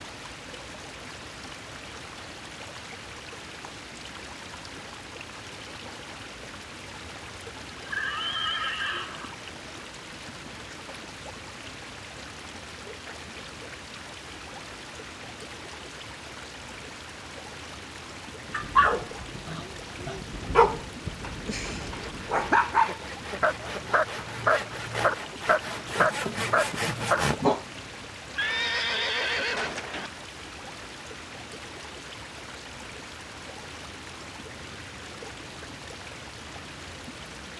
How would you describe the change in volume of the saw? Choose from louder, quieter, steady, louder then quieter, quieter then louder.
louder.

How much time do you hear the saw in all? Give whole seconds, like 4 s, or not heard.
6 s.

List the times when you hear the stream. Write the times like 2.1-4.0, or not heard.
0.0-37.5.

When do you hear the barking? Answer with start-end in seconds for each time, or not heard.
18.5-27.6.